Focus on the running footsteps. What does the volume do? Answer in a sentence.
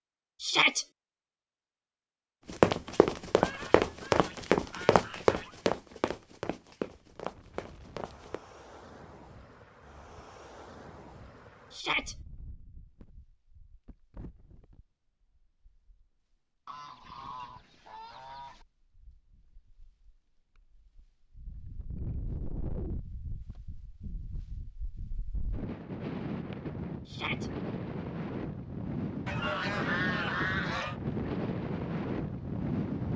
The volume of the running footsteps goes down.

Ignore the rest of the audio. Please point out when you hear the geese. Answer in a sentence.
You can hear the geese from 3.4 to 5.6 s, from 16.6 to 18.6 s and from 29.2 to 30.9 s.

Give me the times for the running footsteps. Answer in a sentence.
You can hear the running footsteps from 2.5 to 8.4 s.